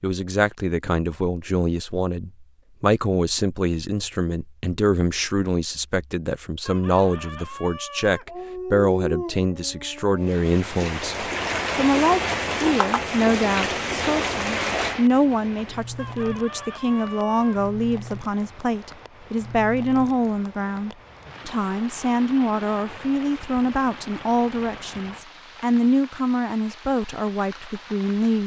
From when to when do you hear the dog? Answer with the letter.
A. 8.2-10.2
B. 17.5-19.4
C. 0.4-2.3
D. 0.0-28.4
A.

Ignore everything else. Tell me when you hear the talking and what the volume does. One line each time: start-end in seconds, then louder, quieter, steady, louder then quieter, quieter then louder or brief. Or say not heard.
0.0-28.4 steady.